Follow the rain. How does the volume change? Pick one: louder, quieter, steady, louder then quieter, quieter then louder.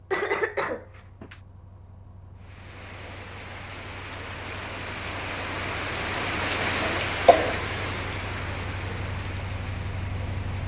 louder then quieter.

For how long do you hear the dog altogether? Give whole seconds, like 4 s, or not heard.
not heard.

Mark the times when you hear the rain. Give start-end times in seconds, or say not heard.
2.4-10.6.